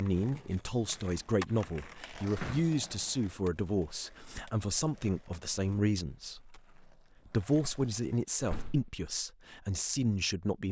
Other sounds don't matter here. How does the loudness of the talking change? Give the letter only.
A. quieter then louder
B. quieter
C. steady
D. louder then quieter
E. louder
C.